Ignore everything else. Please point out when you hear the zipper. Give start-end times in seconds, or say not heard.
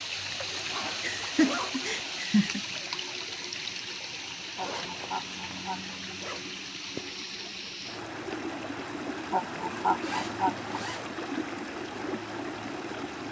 0.5-1.9, 4.5-6.5, 10.0-11.2.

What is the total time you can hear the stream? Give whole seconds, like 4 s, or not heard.
13 s.